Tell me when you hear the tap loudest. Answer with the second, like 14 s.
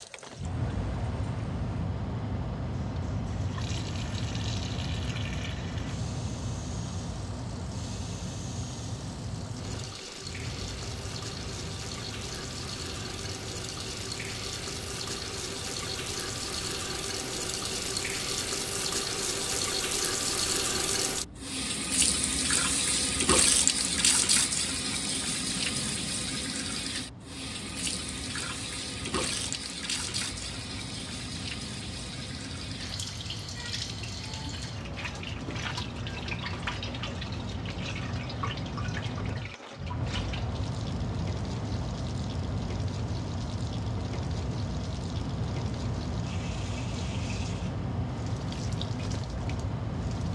24 s.